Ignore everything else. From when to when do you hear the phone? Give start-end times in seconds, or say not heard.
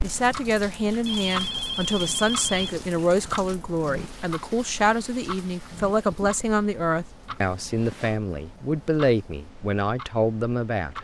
1.1-2.8, 7.4-8.2.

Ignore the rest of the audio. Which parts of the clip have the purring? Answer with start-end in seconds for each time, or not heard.
not heard.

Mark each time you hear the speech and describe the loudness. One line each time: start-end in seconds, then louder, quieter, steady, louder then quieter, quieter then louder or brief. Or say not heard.
0.0-10.9 steady.